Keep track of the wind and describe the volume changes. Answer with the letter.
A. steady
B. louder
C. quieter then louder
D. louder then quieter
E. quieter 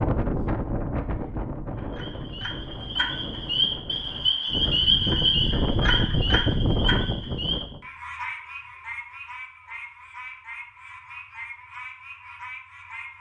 C.